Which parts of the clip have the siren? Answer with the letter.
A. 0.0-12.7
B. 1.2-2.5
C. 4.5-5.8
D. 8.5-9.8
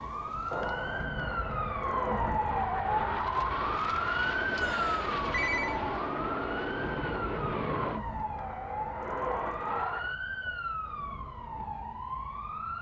A.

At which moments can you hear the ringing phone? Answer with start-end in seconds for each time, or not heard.
4.5-5.8.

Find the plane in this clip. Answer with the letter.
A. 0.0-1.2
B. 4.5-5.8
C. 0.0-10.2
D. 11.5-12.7
C.